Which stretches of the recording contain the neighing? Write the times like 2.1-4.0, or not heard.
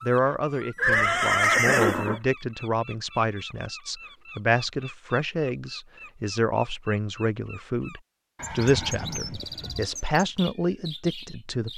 0.8-2.2, 8.3-9.8.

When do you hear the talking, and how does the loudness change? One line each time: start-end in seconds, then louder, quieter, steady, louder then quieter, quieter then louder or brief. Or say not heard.
0.0-11.7 steady.